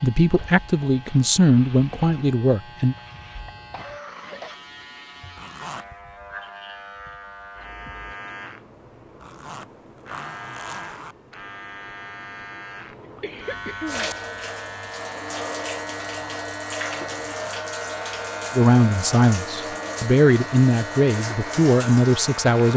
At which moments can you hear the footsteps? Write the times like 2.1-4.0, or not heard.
not heard.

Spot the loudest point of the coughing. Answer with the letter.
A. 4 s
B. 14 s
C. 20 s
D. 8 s
B.